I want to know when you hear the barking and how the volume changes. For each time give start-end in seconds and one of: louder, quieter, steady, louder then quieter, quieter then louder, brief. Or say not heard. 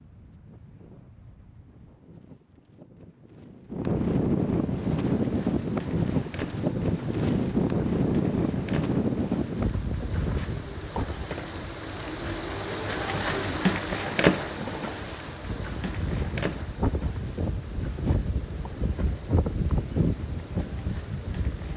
not heard.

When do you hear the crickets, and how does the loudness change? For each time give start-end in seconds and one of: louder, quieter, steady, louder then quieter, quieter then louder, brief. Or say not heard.
4.8-21.7 louder then quieter.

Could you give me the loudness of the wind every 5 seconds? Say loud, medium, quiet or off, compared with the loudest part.
medium, loud, medium, medium, medium.